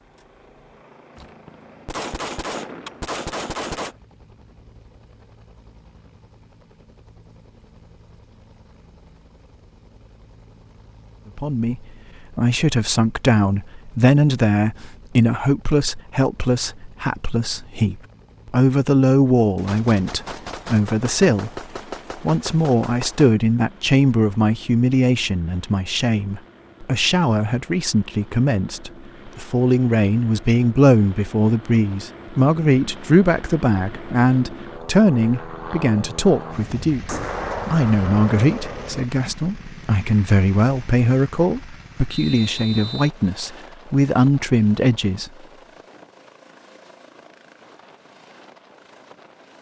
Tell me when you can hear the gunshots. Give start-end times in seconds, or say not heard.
1.1-4.0, 19.6-23.4, 37.0-39.0.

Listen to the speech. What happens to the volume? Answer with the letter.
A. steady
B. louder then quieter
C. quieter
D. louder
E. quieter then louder
A.